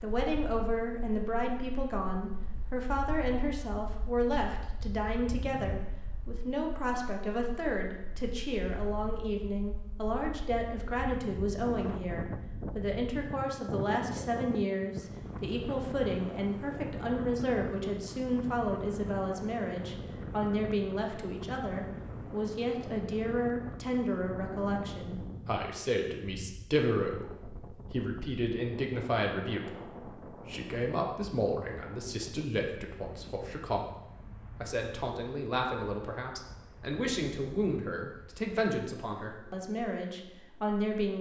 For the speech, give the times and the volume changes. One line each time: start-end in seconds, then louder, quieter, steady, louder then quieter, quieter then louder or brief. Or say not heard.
0.0-41.1 steady.